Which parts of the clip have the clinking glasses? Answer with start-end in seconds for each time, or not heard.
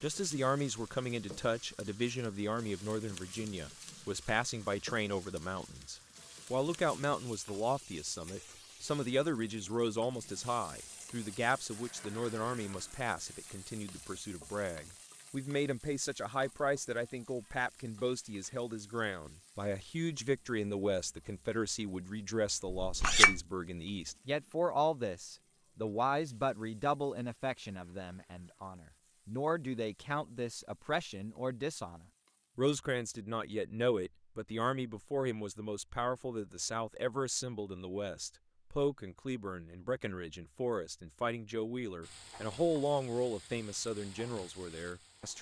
22.6-23.4.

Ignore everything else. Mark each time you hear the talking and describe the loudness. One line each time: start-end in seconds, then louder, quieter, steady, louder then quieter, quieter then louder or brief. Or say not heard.
0.0-45.3 steady.